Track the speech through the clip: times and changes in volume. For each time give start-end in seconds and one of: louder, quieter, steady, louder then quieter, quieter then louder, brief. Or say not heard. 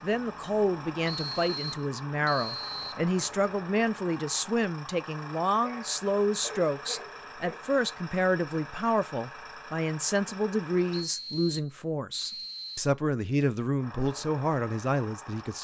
0.0-15.5 steady.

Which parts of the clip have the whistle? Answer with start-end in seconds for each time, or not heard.
1.1-3.0, 10.9-12.9.